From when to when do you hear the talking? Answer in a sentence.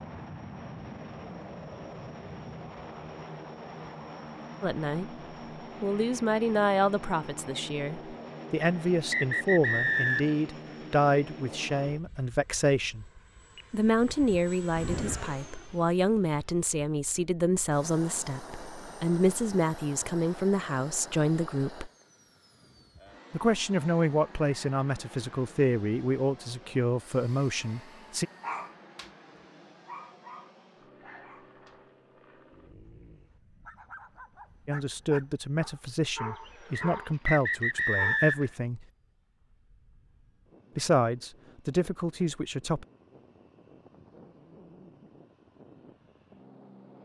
You can hear the talking from 4.6 to 5.1 s, from 5.8 to 13.1 s, from 13.7 to 21.9 s, from 23.3 to 28.2 s, from 34.6 to 38.9 s and from 40.8 to 42.9 s.